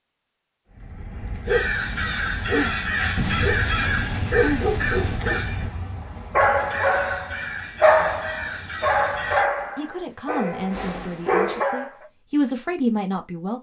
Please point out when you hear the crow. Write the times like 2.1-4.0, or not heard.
1.4-9.4.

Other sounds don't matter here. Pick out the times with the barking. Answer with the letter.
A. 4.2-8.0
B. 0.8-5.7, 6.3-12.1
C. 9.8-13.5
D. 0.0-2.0
B.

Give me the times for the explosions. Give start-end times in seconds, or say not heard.
3.1-5.2.